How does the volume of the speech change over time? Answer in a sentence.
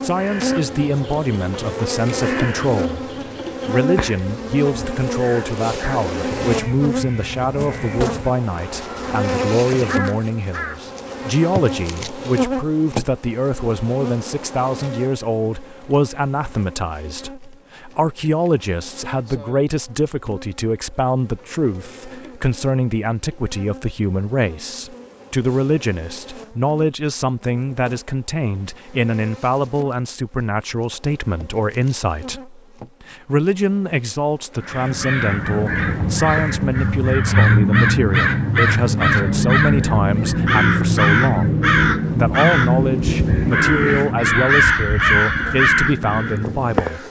The volume of the speech stays about the same.